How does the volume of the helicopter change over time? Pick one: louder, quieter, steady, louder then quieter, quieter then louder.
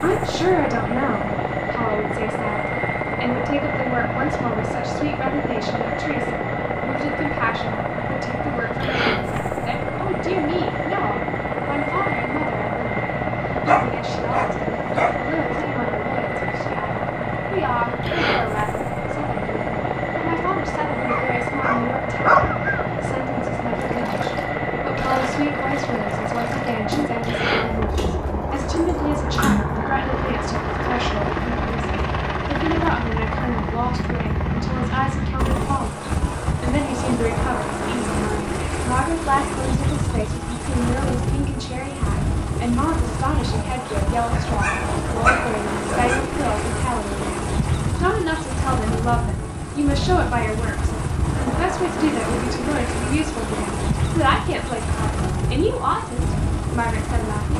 steady.